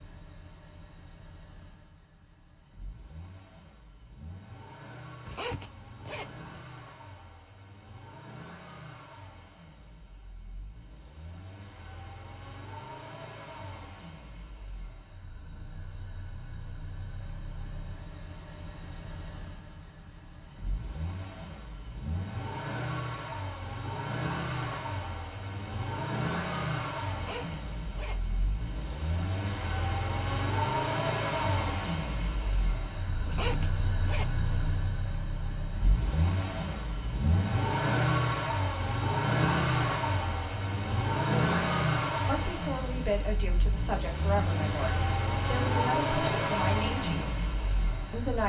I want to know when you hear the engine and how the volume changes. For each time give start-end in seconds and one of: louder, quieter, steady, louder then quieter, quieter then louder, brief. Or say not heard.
0.0-48.4 louder.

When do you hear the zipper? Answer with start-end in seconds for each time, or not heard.
5.2-6.5, 27.1-28.4, 33.2-34.2.